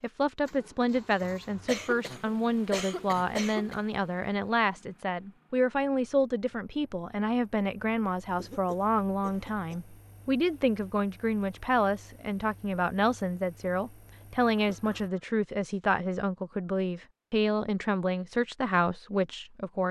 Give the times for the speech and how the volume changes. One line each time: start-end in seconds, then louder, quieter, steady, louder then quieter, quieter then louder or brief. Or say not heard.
0.0-19.8 steady.